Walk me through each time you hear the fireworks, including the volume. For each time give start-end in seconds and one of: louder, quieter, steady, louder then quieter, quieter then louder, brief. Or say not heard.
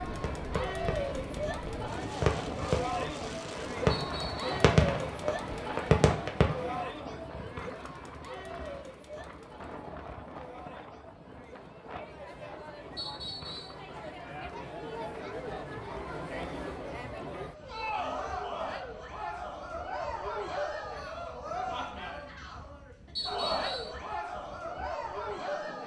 0.2-6.8 louder.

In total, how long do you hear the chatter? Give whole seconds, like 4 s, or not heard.
26 s.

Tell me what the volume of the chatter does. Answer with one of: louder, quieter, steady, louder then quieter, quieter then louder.
quieter then louder.